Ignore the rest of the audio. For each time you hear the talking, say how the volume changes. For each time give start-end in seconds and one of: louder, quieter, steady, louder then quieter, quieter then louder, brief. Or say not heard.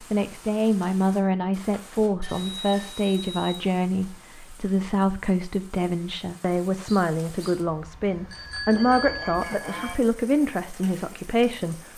0.1-11.9 steady.